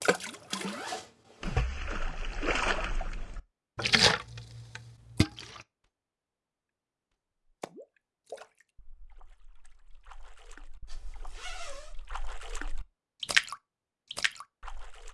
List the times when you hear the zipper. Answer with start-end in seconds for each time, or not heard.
0.5-1.6, 10.8-11.9.